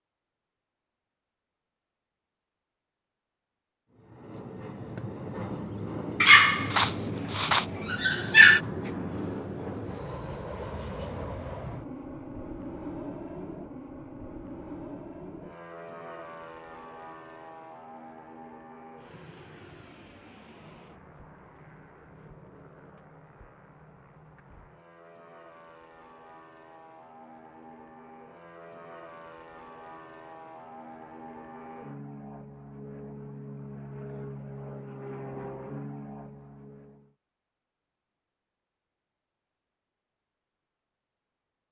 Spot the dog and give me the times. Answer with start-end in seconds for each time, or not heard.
6.2-8.6.